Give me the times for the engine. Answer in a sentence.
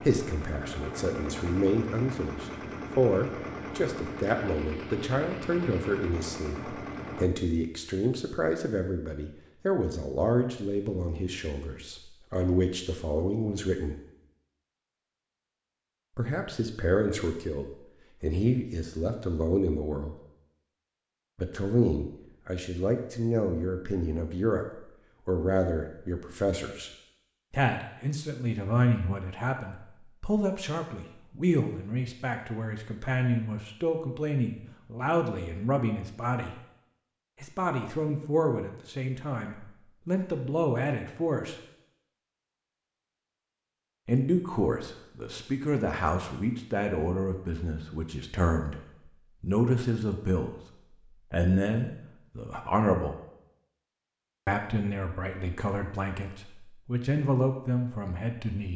You can hear the engine from 0.0 to 7.3 s.